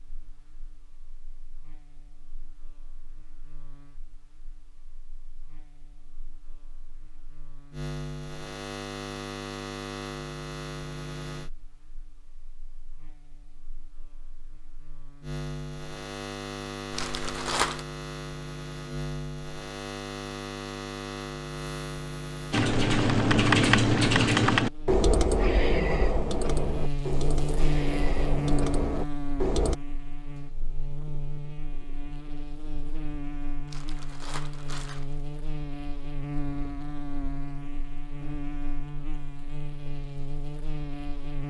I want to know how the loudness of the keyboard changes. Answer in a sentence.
The volume of the keyboard goes down.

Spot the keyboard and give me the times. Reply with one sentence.
You can hear the keyboard from 22.5 to 29.8 s.